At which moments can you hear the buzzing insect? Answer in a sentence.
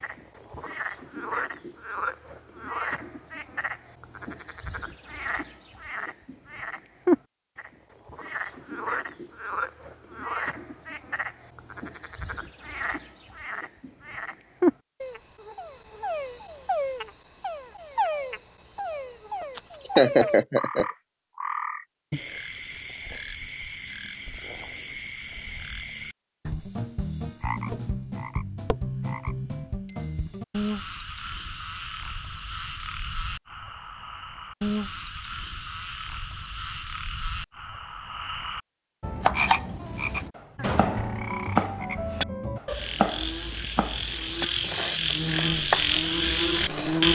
The buzzing insect can be heard from 44.9 to 47.1 s.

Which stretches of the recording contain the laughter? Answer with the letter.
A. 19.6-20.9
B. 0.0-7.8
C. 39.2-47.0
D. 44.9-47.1
A.